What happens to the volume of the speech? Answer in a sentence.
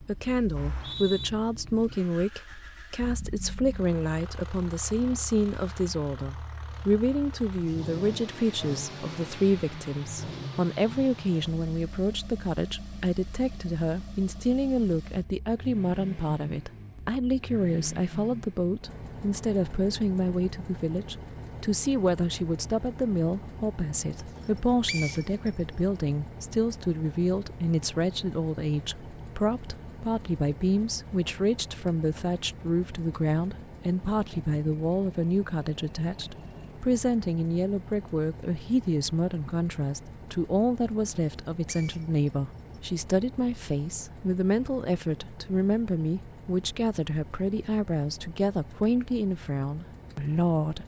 The volume of the speech stays about the same.